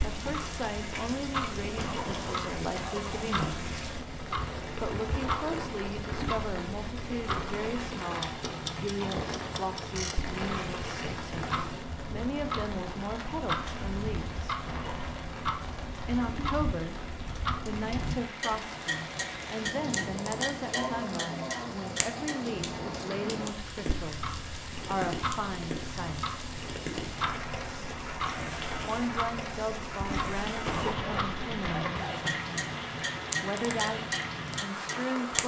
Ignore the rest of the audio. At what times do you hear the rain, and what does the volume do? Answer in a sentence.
The rain can be heard from 0.0 to 35.4 s, at a steady volume.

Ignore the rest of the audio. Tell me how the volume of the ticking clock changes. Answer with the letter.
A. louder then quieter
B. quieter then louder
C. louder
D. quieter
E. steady
E.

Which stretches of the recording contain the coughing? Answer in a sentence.
The coughing can be heard from 1.8 to 3.5 s, from 14.7 to 15.2 s and from 30.6 to 32.4 s.